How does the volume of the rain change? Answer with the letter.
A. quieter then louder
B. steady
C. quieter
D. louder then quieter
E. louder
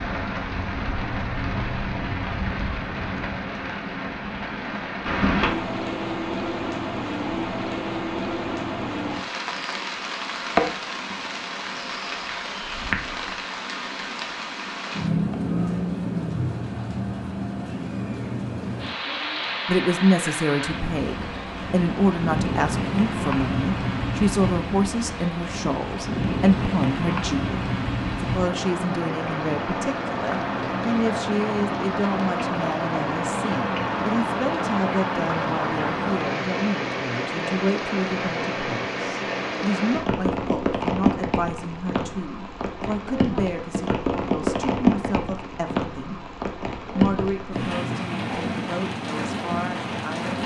B.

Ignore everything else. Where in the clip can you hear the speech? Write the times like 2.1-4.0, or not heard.
19.6-46.2, 47.0-50.4.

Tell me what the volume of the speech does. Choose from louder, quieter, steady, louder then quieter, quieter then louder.
quieter.